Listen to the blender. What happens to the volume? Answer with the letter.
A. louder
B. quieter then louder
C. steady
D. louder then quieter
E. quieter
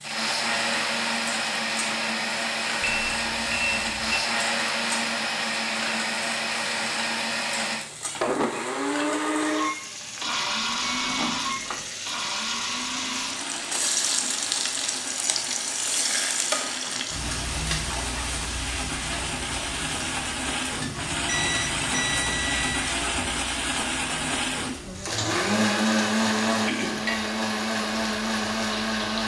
B.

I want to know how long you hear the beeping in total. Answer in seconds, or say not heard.
4 s.